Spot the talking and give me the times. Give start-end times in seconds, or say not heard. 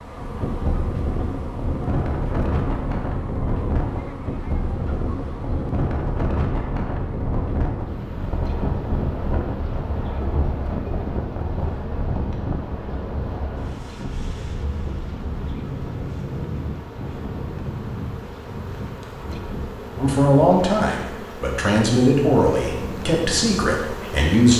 19.9-24.5.